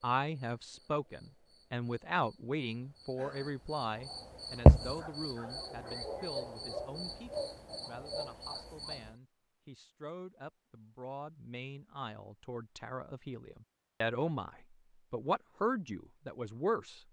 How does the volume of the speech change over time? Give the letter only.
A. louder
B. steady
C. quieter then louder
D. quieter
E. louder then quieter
C.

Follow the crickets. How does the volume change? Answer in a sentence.
The loudness of the crickets goes up, then down.